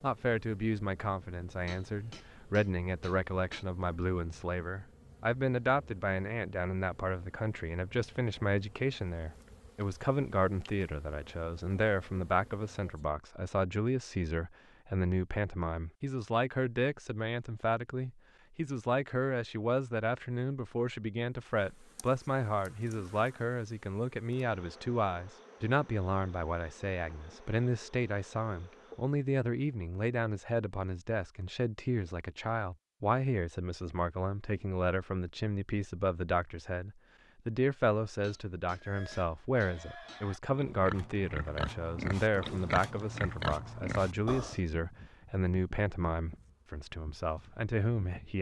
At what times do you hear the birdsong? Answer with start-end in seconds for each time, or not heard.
not heard.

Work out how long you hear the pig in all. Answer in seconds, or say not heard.
6 s.